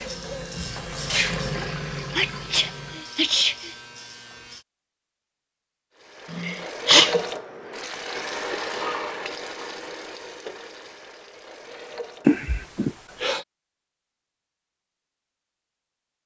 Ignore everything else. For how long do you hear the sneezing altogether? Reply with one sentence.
The sneezing can be heard for 4 seconds in total.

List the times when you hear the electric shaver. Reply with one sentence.
You can hear the electric shaver from 0.0 to 4.7 s.